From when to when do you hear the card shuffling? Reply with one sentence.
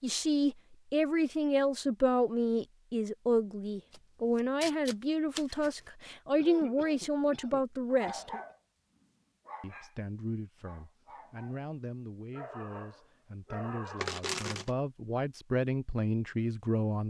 You can hear the card shuffling from 3.9 to 5.7 s and from 13.9 to 14.7 s.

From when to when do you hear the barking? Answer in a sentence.
The barking can be heard from 7.9 to 9.9 s, from 10.6 to 11.7 s and from 12.3 to 14.2 s.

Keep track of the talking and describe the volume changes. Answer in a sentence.
The loudness of the talking goes down, then up.